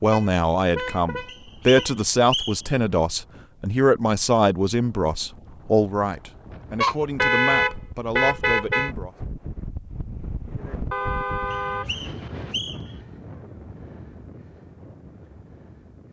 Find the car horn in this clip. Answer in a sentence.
The car horn can be heard from 0.1 to 1.9 s, from 6.8 to 8.9 s and from 10.9 to 12.6 s.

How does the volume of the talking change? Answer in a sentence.
The loudness of the talking goes down.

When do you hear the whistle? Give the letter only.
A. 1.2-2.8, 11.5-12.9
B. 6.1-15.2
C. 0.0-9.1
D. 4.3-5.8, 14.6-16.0
A.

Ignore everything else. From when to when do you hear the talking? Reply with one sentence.
The talking can be heard from 0.0 to 9.1 s.